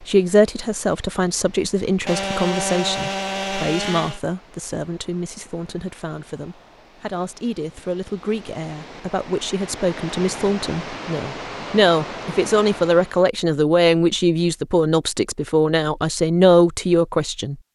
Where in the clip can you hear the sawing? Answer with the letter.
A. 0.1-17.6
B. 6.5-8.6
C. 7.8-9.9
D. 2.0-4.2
D.